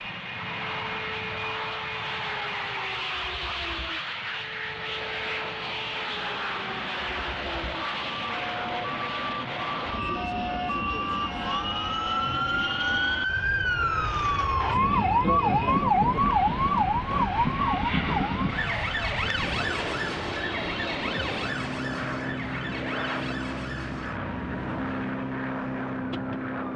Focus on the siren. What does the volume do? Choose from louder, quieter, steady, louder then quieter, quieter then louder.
louder then quieter.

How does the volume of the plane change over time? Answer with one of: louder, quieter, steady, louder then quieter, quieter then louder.
steady.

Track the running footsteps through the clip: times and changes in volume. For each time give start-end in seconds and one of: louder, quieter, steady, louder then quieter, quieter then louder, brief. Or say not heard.
not heard.